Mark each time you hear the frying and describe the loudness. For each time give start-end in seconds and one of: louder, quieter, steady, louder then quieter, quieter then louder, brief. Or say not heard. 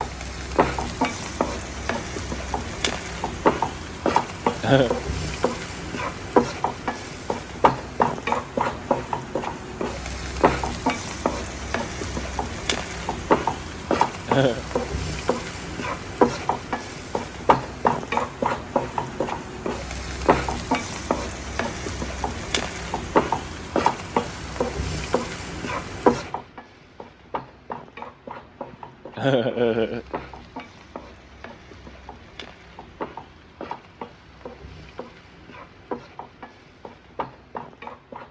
0.0-38.2 quieter.